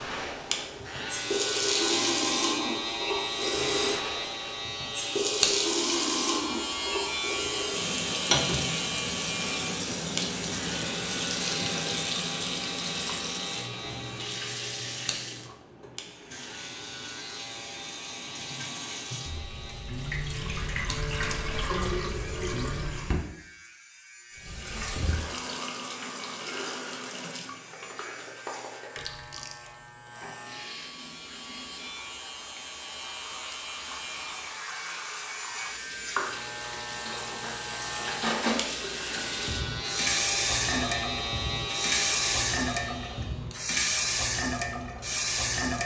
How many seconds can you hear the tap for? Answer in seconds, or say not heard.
45 s.